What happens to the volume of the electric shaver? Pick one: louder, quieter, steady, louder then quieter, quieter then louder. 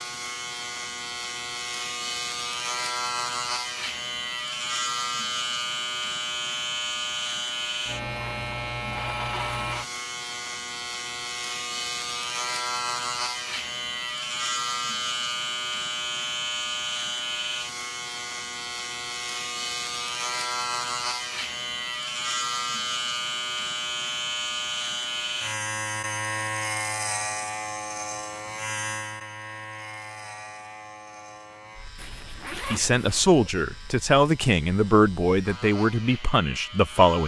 quieter.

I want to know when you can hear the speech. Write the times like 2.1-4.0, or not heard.
32.7-37.2.